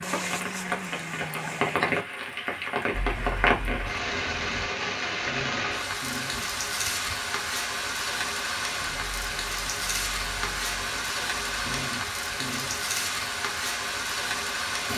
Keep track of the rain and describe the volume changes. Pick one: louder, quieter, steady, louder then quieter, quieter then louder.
steady.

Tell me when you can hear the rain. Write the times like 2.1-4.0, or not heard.
0.0-14.9.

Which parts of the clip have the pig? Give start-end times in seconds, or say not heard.
not heard.